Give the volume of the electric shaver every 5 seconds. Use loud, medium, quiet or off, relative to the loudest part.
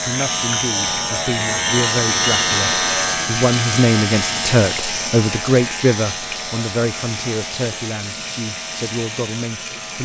loud, medium.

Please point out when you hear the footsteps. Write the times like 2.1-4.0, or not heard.
not heard.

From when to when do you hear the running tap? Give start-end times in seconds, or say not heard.
0.0-9.9.